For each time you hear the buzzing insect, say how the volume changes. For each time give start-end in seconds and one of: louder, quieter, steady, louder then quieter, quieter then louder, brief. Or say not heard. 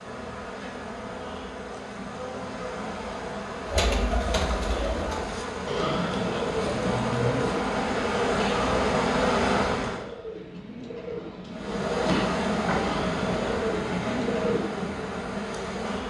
0.0-10.1 louder
11.5-16.0 quieter.